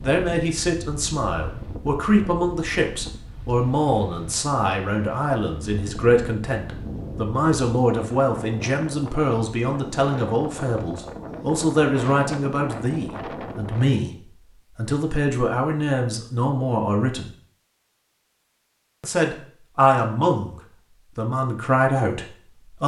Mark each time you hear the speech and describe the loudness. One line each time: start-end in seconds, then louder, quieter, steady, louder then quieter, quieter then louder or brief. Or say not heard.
0.0-17.3 steady
19.0-20.6 brief
21.1-22.8 brief.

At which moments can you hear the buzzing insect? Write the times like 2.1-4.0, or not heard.
not heard.